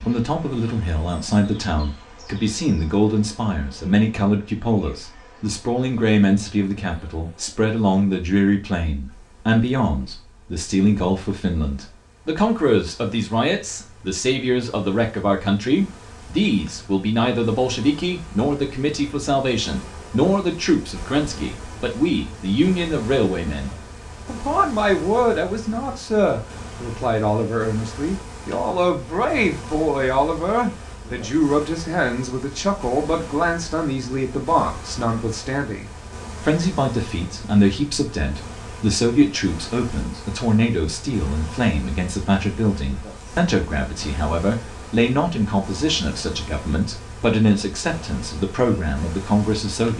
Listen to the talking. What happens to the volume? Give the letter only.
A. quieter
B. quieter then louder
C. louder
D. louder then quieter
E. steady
E.